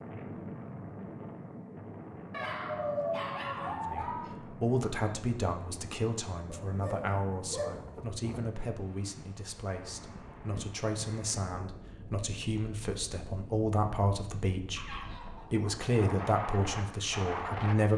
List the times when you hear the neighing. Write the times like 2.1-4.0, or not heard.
not heard.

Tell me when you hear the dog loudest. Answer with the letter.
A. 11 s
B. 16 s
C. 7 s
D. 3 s
D.